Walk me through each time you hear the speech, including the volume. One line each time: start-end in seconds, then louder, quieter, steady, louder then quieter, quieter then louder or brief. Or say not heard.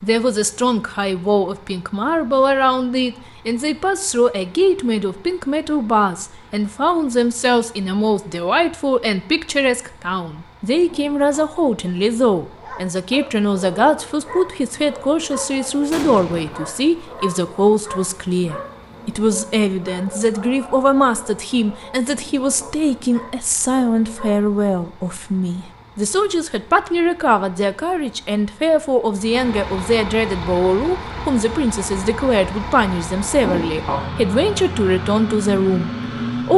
0.0-36.5 steady.